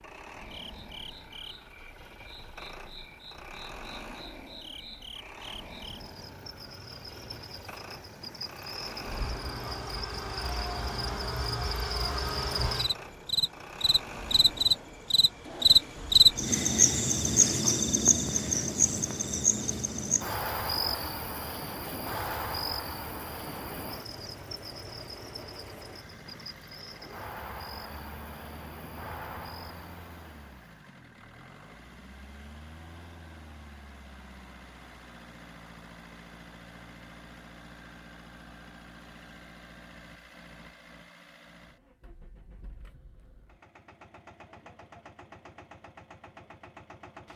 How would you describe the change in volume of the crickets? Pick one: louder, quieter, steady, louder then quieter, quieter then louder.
louder then quieter.